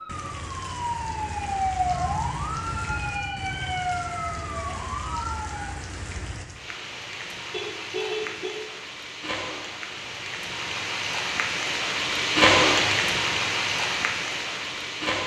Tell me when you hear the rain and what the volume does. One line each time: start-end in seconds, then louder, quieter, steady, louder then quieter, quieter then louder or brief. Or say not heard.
0.1-15.2 louder.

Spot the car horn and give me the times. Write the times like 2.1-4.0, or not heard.
7.5-8.6.